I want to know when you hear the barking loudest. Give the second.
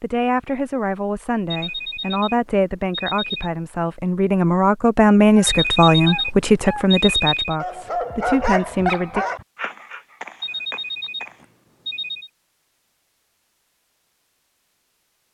8 s.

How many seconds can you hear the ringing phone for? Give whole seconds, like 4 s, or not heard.
6 s.